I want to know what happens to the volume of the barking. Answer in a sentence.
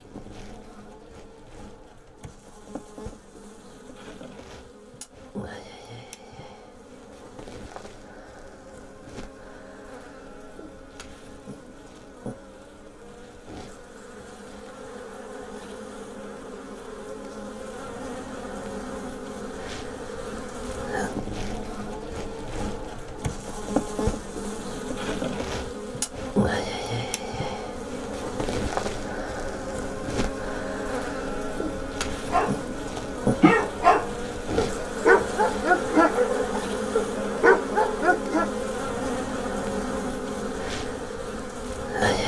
The loudness of the barking stays about the same.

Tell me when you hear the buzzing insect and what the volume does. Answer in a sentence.
You can hear the buzzing insect from 0.0 to 42.2 s, getting louder.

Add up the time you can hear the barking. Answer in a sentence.
The barking can be heard for 6 seconds in total.